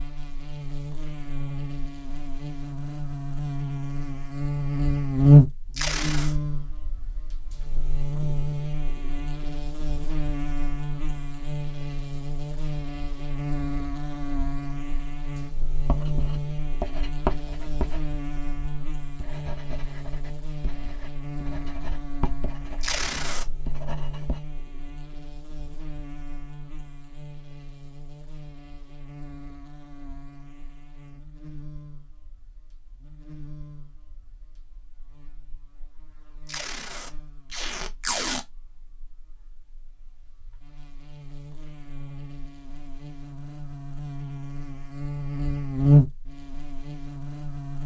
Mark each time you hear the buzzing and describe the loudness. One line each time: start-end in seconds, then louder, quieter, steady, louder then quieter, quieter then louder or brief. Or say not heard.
0.0-47.8 quieter then louder.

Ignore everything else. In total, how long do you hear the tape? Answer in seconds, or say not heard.
3 s.